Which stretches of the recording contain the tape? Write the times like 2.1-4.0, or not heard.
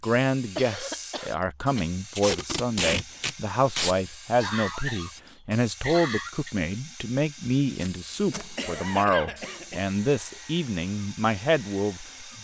2.1-4.0, 7.7-8.4.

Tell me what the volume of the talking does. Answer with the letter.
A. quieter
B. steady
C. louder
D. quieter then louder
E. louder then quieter
B.